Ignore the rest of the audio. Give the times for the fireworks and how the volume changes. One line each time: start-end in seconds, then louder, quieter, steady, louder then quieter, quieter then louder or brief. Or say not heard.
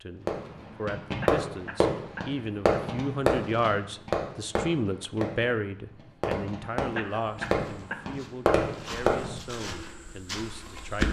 0.2-9.3 quieter then louder.